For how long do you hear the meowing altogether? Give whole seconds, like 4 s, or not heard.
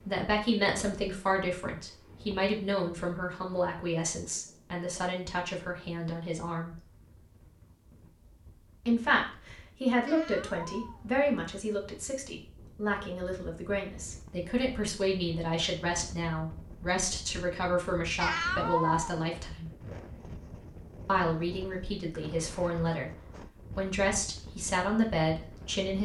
2 s.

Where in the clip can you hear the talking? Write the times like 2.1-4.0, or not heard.
0.1-6.8, 8.8-19.7, 21.1-23.1, 23.8-25.9.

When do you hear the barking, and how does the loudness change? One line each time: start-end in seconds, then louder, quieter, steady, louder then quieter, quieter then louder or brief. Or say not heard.
not heard.